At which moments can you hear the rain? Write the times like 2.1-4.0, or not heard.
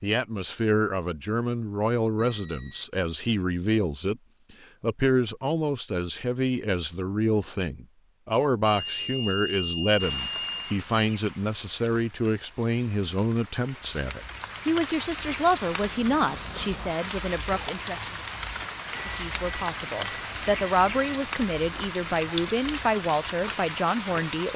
10.0-24.5.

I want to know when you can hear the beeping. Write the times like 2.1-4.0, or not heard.
2.1-2.9, 8.7-10.8, 18.9-21.2.